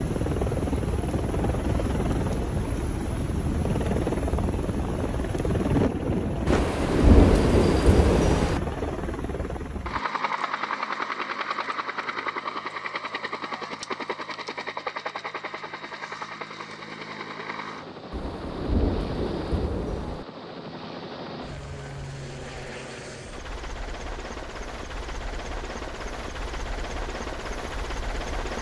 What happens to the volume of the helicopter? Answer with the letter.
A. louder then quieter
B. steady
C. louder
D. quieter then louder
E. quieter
E.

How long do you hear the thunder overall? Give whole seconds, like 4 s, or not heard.
4 s.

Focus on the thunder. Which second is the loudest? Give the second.
7 s.